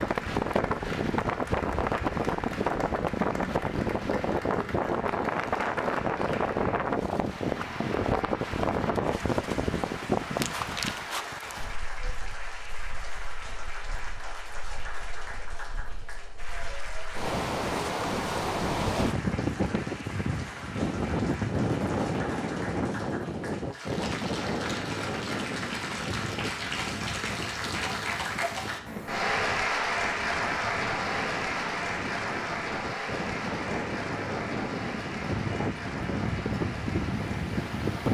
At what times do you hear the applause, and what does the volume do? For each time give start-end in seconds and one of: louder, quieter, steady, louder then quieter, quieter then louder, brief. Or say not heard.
0.0-38.0 louder.